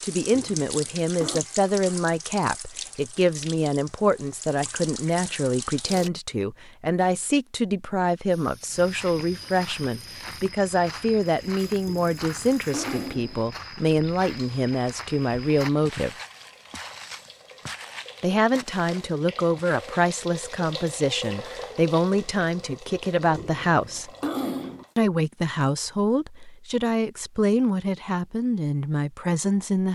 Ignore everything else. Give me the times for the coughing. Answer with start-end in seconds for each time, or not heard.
0.3-1.4, 11.8-13.3, 23.4-24.9.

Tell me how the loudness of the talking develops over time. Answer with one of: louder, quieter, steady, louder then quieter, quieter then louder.
steady.